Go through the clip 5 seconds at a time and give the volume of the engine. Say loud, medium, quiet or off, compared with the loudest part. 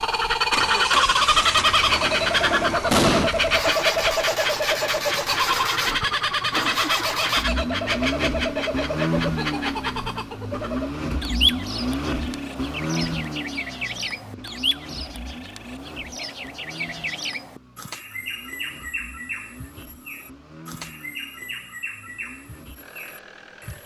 loud, loud, loud, quiet, quiet.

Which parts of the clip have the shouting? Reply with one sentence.
You can't hear the shouting here.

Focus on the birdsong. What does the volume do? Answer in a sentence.
The volume of the birdsong goes down.